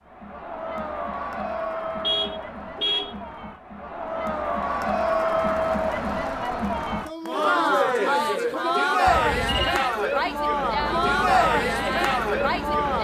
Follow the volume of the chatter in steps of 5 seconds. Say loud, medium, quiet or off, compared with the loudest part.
medium, loud, loud.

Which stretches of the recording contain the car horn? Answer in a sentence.
The car horn can be heard from 2.0 to 3.1 s and from 9.1 to 9.8 s.